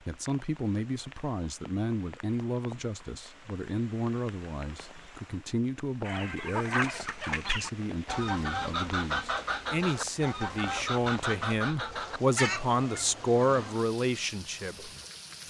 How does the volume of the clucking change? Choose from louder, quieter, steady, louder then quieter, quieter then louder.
steady.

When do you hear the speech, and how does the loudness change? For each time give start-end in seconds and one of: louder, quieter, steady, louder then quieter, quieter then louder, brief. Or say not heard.
0.1-14.9 louder.